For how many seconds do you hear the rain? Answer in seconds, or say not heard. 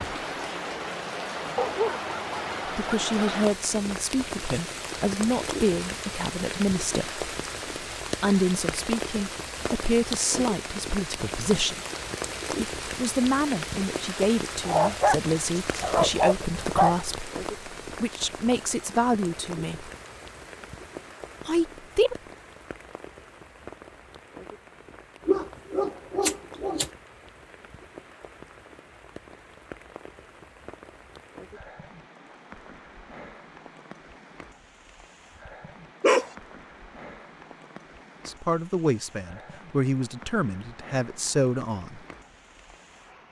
43 s.